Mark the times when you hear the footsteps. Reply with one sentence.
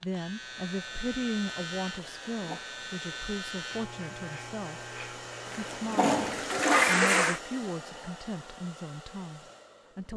The footsteps can't be heard in this clip.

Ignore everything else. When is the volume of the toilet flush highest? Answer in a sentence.
The volume of the toilet flush peaks at 7 seconds.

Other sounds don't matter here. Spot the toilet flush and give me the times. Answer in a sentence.
You can hear the toilet flush from 2.0 to 2.6 s and from 5.5 to 7.4 s.